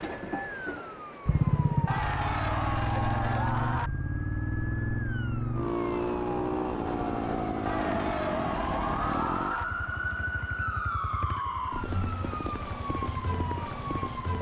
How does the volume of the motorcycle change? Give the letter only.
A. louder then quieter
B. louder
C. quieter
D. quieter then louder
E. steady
C.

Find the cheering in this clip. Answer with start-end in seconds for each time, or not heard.
1.9-3.9, 7.7-9.7.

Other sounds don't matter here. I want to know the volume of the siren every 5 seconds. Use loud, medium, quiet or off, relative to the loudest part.
medium, loud, loud.